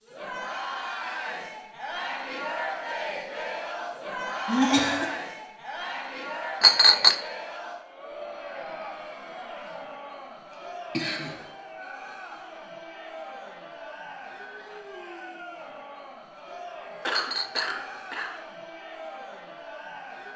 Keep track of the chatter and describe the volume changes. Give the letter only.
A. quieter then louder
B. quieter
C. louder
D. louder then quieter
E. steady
B.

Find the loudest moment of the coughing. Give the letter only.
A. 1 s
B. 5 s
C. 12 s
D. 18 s
B.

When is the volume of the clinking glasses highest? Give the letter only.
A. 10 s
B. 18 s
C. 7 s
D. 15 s
C.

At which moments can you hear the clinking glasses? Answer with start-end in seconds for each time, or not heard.
6.6-7.2, 17.1-17.8.